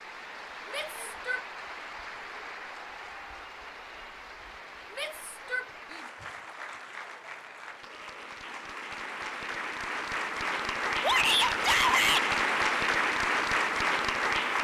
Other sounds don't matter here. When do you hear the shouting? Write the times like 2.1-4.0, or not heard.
0.7-1.4, 4.9-6.0, 11.0-12.2.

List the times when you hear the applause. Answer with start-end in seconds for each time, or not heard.
0.0-14.5.